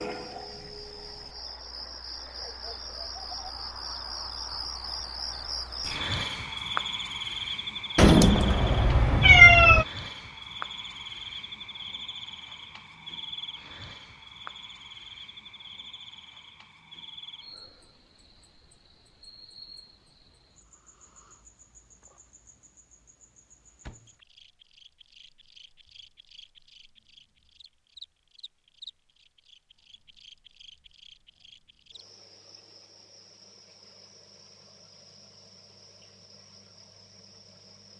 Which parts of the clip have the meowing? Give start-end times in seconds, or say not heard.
8.0-9.8.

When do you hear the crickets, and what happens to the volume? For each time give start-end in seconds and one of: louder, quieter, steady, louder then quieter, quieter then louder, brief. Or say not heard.
0.0-37.9 quieter.